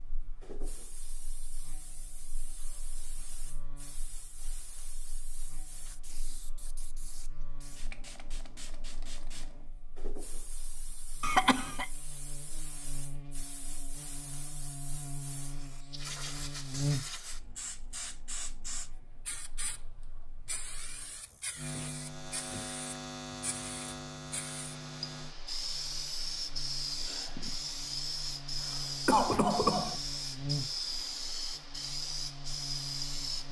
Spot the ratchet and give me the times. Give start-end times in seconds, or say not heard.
not heard.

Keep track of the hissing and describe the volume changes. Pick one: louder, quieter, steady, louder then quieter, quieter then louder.
louder.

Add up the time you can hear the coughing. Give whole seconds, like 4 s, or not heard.
2 s.